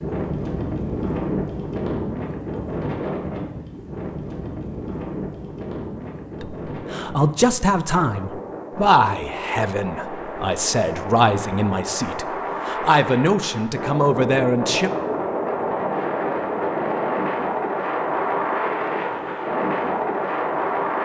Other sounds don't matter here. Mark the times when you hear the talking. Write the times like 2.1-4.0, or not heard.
6.4-14.9.